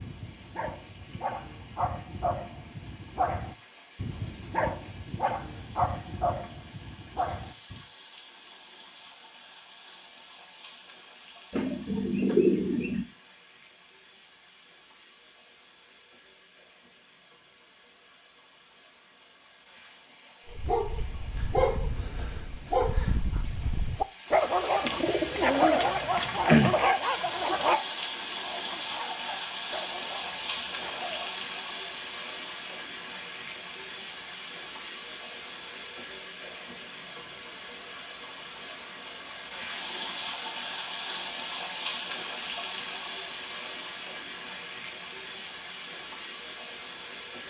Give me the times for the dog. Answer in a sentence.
The dog can be heard from 0.0 to 7.8 s and from 20.4 to 31.4 s.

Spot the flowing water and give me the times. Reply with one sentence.
You can hear the flowing water from 0.0 to 47.4 s.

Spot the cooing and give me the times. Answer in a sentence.
The cooing can be heard from 11.5 to 13.1 s and from 24.9 to 26.8 s.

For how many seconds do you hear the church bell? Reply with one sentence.
You can't hear the church bell here.